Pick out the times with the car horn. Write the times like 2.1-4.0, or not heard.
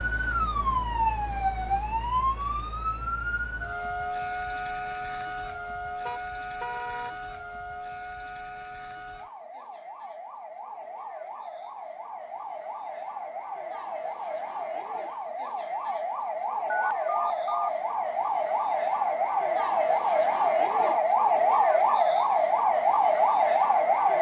6.0-7.2.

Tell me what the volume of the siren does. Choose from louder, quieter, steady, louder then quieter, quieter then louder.
quieter then louder.